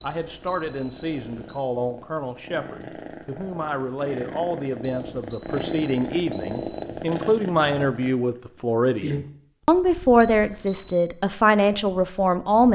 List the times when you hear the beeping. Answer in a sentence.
The beeping can be heard from 0.0 to 1.6 s, from 4.9 to 6.8 s and from 10.2 to 11.1 s.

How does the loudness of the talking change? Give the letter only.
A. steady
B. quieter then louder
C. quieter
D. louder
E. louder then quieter
D.